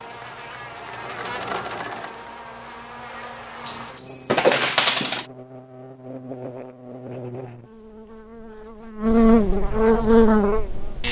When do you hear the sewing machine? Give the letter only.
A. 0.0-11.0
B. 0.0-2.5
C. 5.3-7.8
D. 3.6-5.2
B.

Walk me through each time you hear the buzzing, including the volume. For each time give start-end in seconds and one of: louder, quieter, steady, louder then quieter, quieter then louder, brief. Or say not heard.
0.0-11.0 louder.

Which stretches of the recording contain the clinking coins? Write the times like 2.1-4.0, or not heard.
3.6-5.2.